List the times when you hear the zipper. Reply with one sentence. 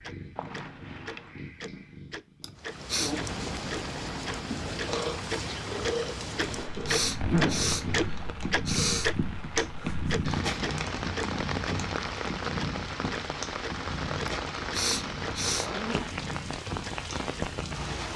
The zipper can be heard from 0.3 to 1.4 s, from 6.4 to 8.1 s and from 15.2 to 16.1 s.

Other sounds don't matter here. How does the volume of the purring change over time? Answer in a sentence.
The volume of the purring goes up, then down.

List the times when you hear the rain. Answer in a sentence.
You can hear the rain from 2.5 to 18.1 s.